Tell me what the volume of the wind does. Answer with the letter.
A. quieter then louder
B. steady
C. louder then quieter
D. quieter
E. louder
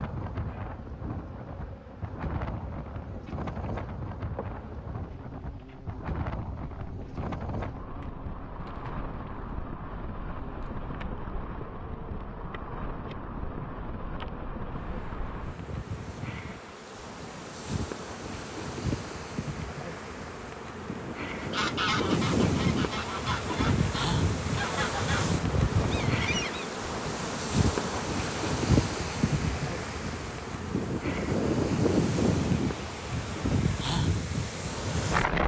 E.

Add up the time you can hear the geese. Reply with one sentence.
You can hear the geese for 5 seconds altogether.